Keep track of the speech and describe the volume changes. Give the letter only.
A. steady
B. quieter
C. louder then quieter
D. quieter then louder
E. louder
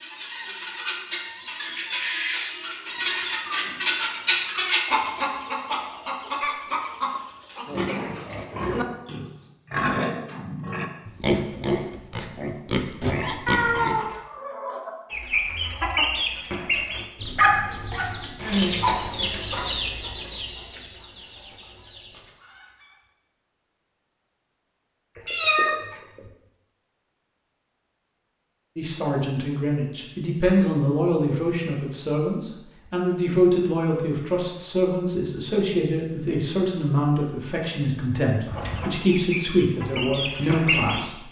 A.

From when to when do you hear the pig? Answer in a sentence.
You can hear the pig from 7.7 to 13.9 s.